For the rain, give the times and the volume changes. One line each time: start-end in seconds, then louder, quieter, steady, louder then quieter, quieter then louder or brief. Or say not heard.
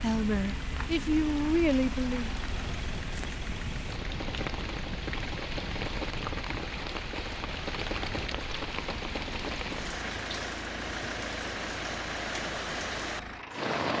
0.0-13.9 louder.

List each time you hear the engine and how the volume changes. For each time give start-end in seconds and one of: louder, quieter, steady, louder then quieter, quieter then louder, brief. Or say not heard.
0.0-13.8 steady.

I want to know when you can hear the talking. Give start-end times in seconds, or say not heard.
0.0-2.3.